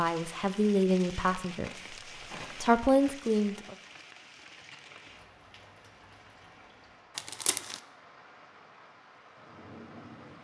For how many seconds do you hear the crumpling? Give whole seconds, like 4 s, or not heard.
2 s.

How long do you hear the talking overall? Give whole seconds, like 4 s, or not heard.
3 s.